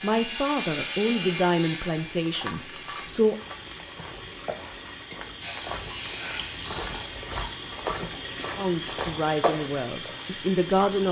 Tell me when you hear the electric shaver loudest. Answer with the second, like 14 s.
1 s.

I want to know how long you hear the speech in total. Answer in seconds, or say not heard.
6 s.